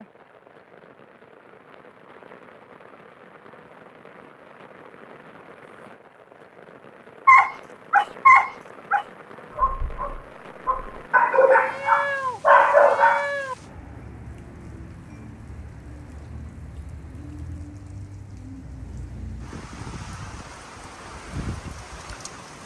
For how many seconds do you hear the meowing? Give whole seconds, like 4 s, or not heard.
2 s.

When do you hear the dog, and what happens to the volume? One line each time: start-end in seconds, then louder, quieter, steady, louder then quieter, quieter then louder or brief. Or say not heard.
7.2-13.2 quieter then louder.